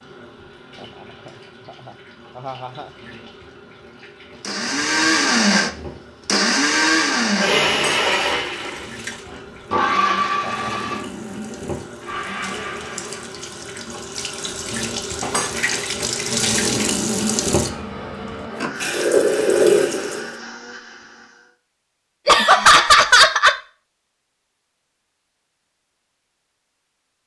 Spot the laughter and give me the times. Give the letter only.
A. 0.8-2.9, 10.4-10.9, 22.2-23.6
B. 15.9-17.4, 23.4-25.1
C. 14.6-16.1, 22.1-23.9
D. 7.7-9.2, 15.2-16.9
A.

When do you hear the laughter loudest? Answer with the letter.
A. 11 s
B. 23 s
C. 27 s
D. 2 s
B.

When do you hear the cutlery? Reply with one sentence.
You can hear the cutlery from 7.7 to 9.2 s and from 15.2 to 16.9 s.